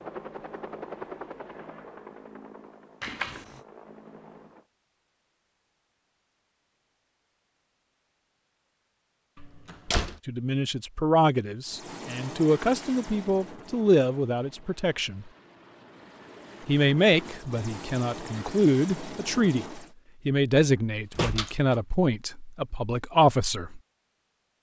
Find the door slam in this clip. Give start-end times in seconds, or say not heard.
3.0-3.6, 9.3-10.2, 20.6-21.8.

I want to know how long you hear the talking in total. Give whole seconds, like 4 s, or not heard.
12 s.